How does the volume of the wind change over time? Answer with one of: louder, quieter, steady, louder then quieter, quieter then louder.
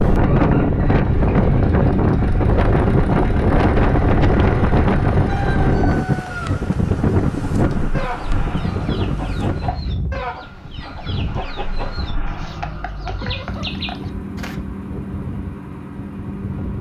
quieter.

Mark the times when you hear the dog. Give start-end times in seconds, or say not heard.
not heard.